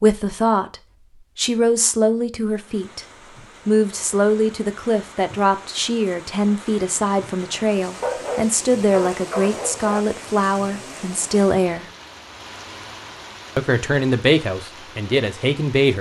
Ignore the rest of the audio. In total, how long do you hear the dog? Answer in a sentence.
You can hear the dog for 2 seconds altogether.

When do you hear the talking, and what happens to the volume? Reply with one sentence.
You can hear the talking briefly from 0.0 to 0.8 s; briefly from 1.4 to 3.0 s; from 3.6 to 11.8 s, at a steady volume; and briefly from 13.6 to 15.9 s.